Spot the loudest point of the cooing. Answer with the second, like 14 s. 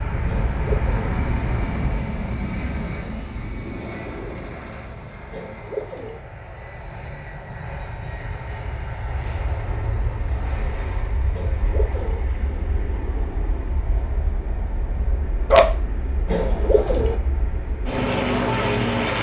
17 s.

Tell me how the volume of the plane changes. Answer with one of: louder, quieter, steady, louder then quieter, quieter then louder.
quieter then louder.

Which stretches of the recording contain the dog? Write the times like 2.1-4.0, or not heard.
13.9-15.7.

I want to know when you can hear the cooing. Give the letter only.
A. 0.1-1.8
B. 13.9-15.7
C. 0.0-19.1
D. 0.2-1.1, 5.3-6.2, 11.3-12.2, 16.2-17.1
D.